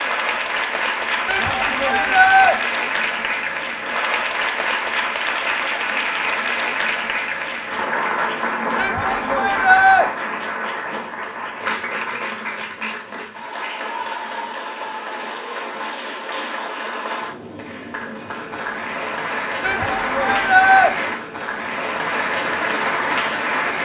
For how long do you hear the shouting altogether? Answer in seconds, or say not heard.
4 s.